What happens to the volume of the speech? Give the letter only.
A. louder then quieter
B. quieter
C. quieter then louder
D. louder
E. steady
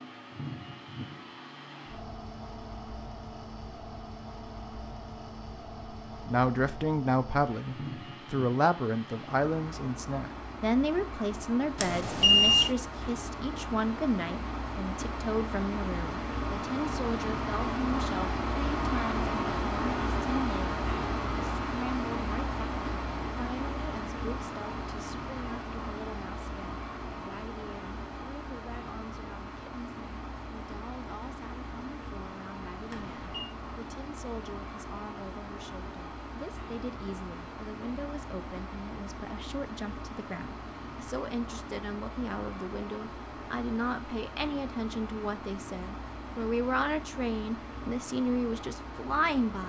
C.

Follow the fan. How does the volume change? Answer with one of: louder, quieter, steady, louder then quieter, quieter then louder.
louder then quieter.